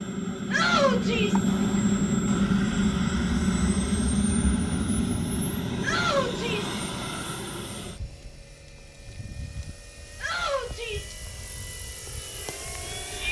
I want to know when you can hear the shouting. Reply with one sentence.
The shouting can be heard from 0.5 to 1.4 s, from 5.8 to 6.8 s and from 10.2 to 11.2 s.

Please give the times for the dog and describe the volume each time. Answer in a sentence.
The dog can't be heard in this clip.